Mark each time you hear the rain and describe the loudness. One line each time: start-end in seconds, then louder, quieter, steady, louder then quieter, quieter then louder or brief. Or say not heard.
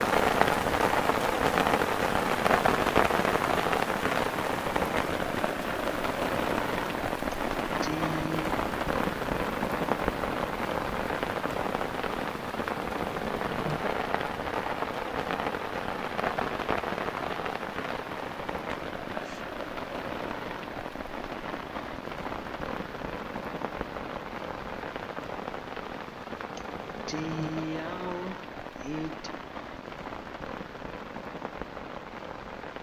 0.0-32.7 quieter.